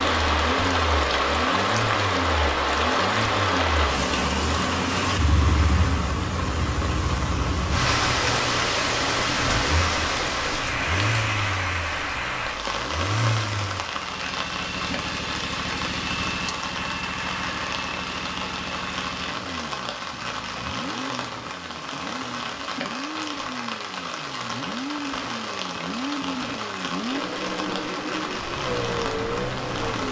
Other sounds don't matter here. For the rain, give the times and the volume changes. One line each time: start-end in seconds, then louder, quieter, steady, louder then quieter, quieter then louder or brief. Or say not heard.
0.0-30.0 quieter.